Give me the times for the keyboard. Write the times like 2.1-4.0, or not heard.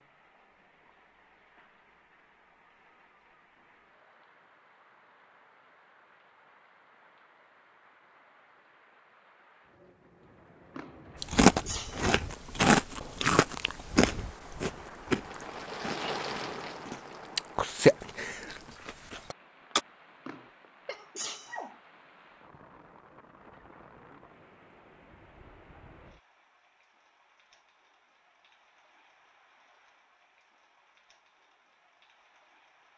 not heard.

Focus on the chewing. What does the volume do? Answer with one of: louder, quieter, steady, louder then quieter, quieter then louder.
quieter then louder.